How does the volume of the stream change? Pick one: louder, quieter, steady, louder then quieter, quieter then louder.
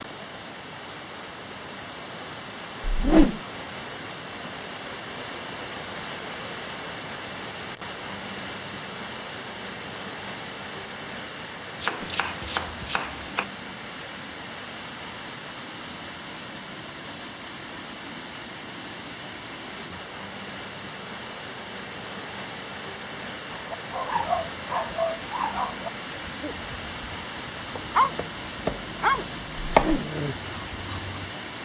steady.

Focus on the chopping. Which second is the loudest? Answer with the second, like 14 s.
30 s.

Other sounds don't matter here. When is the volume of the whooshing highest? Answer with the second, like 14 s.
3 s.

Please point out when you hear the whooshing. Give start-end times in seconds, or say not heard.
2.9-3.4, 29.6-30.1.